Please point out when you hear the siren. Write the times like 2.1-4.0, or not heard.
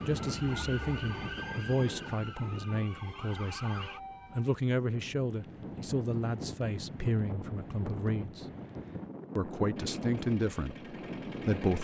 0.0-4.5.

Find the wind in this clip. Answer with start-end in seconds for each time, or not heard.
0.0-11.7.